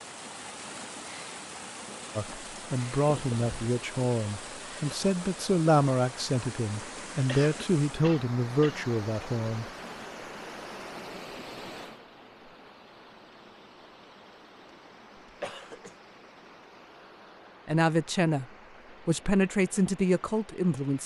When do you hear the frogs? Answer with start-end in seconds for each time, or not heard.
not heard.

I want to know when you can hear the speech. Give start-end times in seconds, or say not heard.
2.1-9.7, 17.6-18.4, 19.1-21.0.